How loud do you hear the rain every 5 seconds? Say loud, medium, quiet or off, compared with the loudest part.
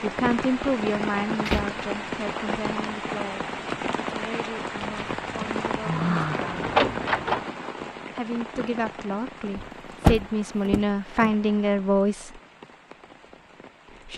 loud, loud, quiet.